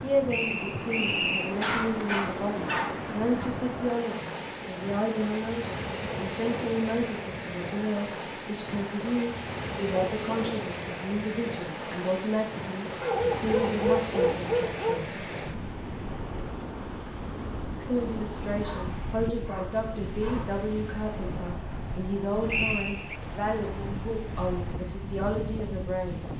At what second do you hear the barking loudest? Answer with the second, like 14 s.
14 s.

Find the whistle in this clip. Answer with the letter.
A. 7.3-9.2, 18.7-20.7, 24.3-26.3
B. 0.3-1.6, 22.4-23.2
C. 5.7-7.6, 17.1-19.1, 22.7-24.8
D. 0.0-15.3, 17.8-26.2
B.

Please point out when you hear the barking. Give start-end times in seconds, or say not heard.
1.6-3.5, 13.0-15.0, 18.6-20.6.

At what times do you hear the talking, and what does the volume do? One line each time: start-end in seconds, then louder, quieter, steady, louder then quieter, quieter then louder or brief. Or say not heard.
0.0-15.3 steady
17.8-26.2 steady.